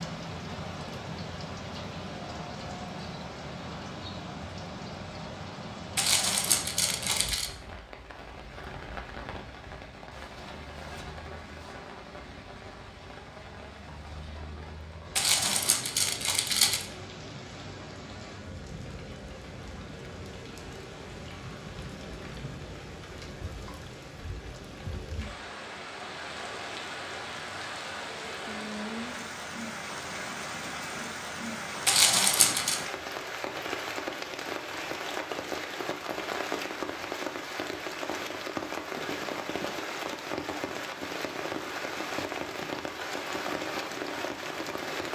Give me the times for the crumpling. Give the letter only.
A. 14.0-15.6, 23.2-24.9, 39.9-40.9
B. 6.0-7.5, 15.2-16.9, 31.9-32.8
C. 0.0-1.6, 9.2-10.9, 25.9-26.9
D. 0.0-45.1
B.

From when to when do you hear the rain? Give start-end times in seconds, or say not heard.
0.0-45.1.